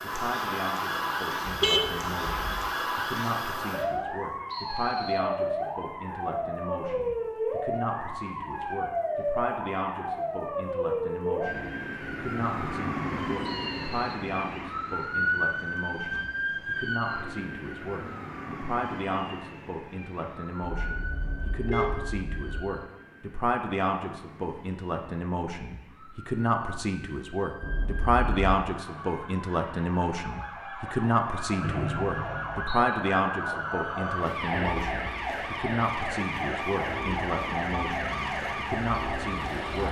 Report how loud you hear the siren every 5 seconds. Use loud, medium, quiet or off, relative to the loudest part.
loud, loud, loud, loud, quiet, quiet, loud, loud.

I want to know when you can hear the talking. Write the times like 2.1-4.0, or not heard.
0.0-39.8.